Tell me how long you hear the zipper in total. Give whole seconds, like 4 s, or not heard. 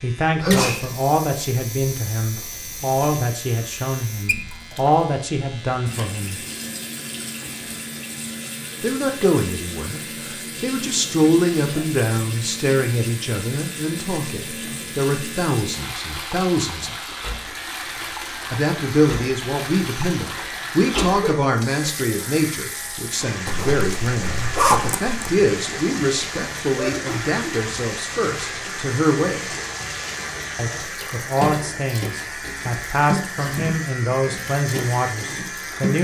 2 s.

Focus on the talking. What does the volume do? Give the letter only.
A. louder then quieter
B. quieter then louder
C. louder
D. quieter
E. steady
E.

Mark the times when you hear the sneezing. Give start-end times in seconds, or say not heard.
0.4-0.8, 20.9-21.3, 26.8-27.4.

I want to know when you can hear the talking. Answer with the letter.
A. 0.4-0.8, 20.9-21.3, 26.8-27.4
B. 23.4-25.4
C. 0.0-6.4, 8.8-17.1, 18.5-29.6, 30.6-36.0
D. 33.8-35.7
C.